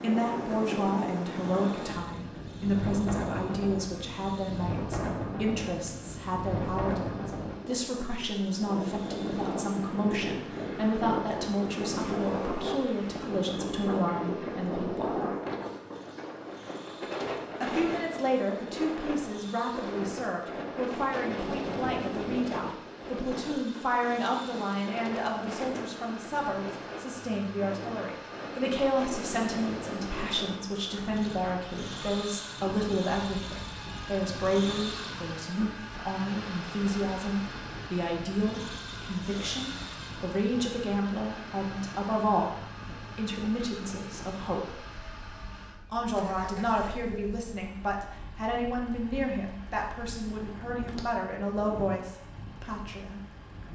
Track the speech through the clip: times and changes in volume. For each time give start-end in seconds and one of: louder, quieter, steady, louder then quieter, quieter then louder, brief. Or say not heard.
0.0-15.2 steady
17.6-44.8 steady
45.9-53.2 steady.